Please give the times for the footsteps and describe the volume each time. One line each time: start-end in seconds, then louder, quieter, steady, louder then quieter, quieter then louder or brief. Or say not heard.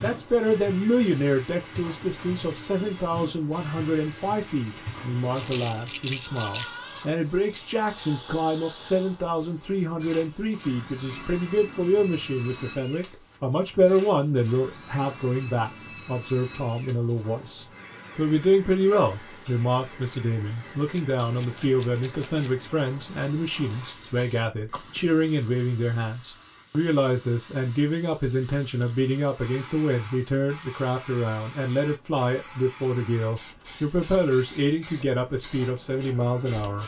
not heard.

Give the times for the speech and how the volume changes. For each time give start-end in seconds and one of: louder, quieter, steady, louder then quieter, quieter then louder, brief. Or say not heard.
0.0-36.8 steady.